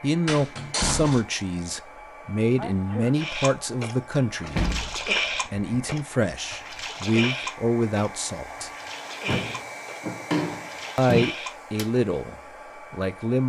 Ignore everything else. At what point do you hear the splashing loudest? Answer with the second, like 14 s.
5 s.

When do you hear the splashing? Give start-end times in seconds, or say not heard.
3.1-11.8.